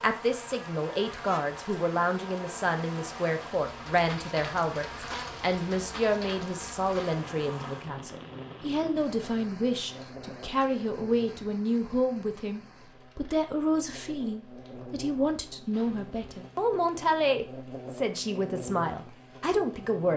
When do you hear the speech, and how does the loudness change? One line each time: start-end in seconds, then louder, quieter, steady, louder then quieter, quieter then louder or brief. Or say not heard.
0.0-20.1 steady.